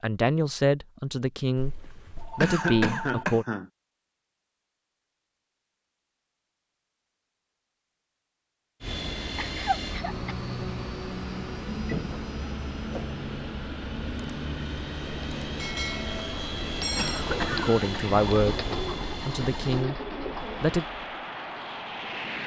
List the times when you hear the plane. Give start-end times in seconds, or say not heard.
8.8-22.4.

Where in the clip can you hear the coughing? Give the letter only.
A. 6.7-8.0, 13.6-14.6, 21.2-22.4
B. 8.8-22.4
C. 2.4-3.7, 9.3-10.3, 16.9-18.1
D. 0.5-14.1
C.